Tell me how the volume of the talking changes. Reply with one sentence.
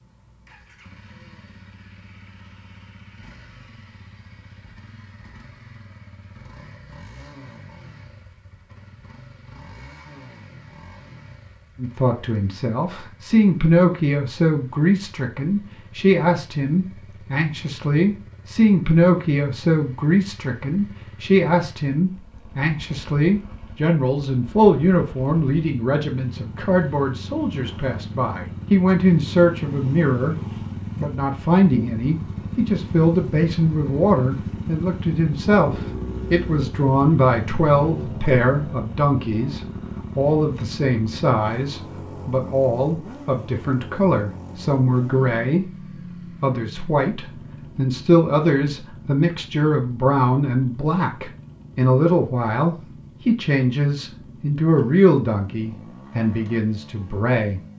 The volume of the talking stays about the same.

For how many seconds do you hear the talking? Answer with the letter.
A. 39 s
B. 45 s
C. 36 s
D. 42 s
B.